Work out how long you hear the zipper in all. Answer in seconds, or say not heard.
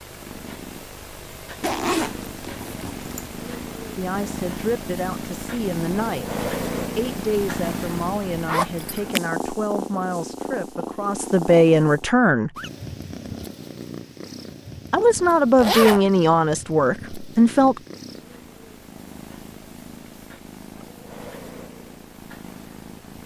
3 s.